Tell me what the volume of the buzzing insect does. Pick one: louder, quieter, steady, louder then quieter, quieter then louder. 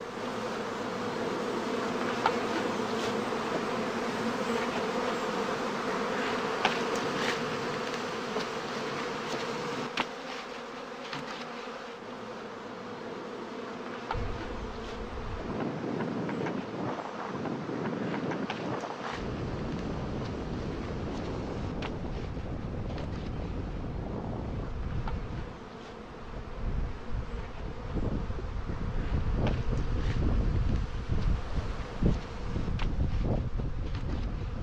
quieter.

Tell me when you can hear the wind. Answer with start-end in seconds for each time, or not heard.
14.1-34.5.